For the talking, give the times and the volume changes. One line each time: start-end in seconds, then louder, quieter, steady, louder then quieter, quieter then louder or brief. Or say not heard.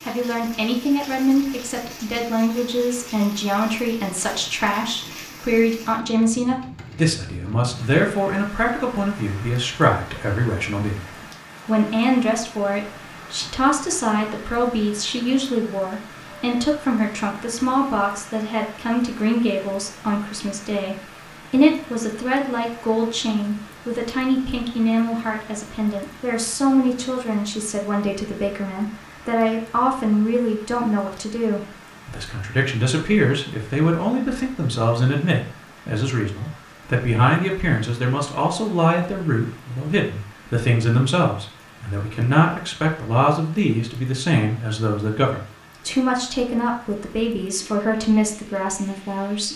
0.1-49.5 steady.